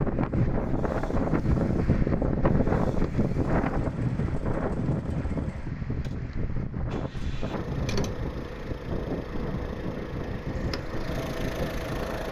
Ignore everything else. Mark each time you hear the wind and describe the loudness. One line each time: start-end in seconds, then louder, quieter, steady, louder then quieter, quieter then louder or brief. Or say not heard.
0.0-12.2 quieter.